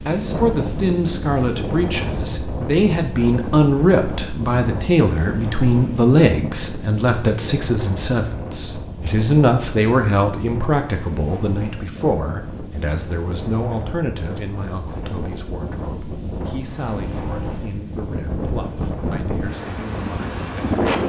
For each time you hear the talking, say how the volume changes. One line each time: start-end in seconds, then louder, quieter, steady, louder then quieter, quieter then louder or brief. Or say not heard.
0.0-21.0 quieter.